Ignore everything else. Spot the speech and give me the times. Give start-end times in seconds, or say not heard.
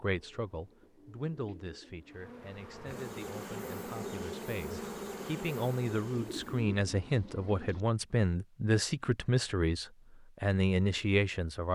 0.0-11.6.